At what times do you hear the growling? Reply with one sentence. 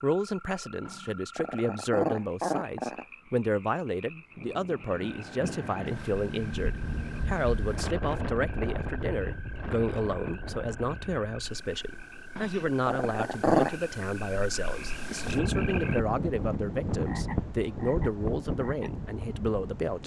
The growling can be heard from 0.8 to 3.0 s and from 12.3 to 13.8 s.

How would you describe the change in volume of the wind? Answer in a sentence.
The volume of the wind goes down, then up.